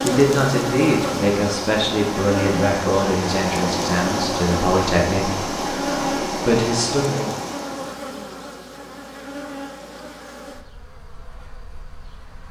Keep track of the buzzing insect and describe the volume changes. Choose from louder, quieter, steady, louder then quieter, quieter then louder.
quieter.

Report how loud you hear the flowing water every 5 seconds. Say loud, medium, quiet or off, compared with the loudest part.
loud, loud, off.